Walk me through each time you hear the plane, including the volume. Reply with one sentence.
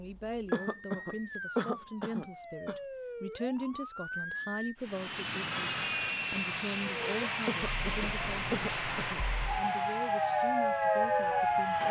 You can hear the plane from 4.8 to 11.8 s, getting quieter.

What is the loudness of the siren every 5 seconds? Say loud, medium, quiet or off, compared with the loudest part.
quiet, medium, loud.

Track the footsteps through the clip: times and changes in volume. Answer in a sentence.
You can't hear the footsteps here.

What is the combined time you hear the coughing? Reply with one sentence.
The coughing can be heard for 4 seconds in total.